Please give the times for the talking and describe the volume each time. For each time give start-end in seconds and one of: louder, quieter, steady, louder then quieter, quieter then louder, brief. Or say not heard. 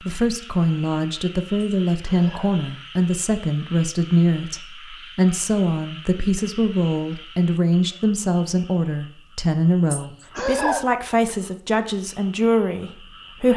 0.0-13.5 steady.